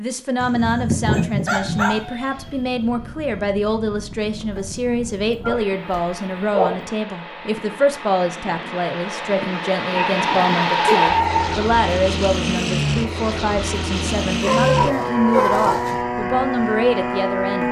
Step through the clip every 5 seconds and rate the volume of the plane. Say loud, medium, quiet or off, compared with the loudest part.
quiet, medium, loud, loud.